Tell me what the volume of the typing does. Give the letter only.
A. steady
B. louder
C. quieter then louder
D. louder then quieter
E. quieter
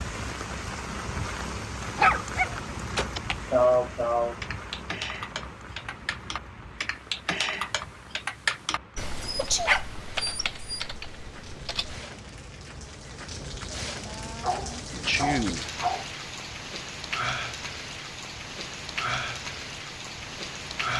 D.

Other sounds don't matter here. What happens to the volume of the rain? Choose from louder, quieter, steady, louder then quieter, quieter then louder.
quieter then louder.